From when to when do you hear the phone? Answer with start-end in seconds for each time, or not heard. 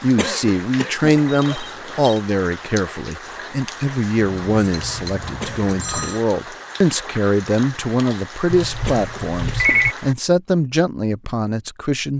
1.2-2.2, 4.4-6.2, 8.5-9.9.